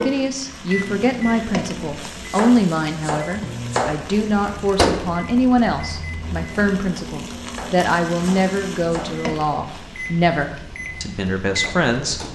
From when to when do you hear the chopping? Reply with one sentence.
The chopping can be heard from 2.4 to 4.0 s and from 7.5 to 9.2 s.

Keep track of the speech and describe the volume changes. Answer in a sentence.
The volume of the speech stays about the same.